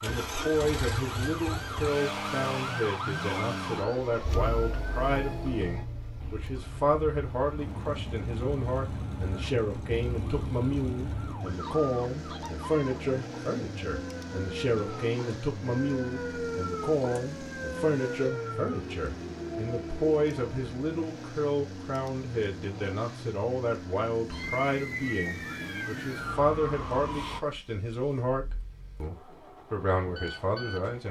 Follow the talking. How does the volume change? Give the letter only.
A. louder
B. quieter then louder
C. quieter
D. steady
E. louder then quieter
D.